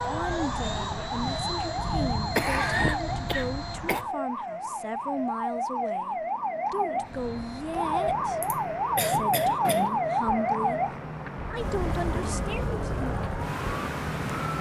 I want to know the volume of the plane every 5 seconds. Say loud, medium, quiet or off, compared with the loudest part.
loud, medium, loud.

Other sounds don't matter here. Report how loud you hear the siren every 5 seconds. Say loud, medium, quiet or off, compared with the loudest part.
medium, loud, loud.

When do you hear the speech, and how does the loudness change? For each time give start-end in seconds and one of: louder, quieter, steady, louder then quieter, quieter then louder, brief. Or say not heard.
0.1-10.8 steady
11.4-13.1 brief.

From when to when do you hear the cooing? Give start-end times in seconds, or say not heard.
not heard.